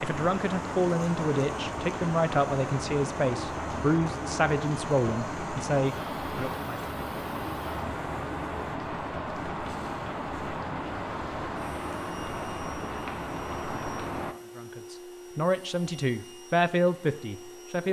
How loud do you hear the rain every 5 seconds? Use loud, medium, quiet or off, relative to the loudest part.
loud, loud, loud, off.